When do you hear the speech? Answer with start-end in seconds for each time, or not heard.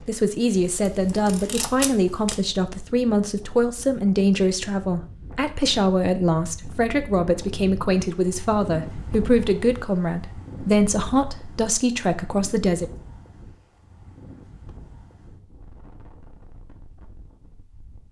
0.1-12.8.